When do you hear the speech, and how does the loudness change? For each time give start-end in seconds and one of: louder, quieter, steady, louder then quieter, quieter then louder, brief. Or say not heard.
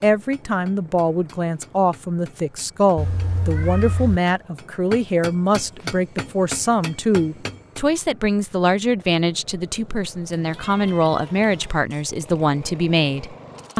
0.0-13.7 steady.